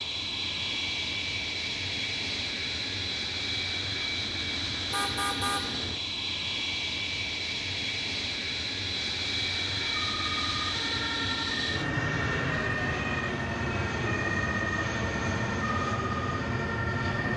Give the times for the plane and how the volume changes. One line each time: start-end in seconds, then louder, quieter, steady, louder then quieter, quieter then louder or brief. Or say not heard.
0.0-17.3 steady.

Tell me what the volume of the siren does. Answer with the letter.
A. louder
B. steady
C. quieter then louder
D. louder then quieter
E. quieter
B.